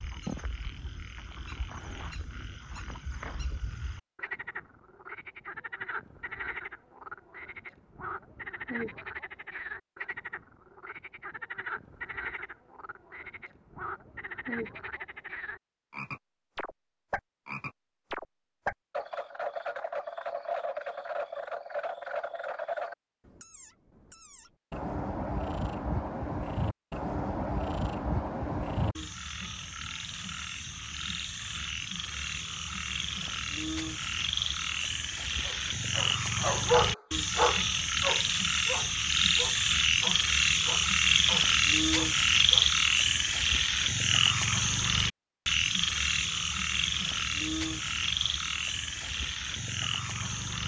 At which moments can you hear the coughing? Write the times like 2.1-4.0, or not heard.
not heard.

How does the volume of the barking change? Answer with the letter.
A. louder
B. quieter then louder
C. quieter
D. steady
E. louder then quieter
C.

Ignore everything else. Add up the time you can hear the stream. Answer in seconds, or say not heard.
not heard.